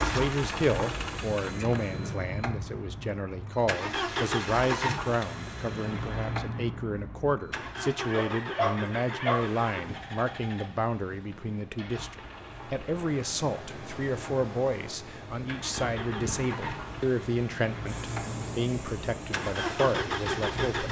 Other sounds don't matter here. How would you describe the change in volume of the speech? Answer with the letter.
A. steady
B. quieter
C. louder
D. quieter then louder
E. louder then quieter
A.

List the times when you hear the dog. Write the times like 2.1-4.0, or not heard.
8.1-9.6.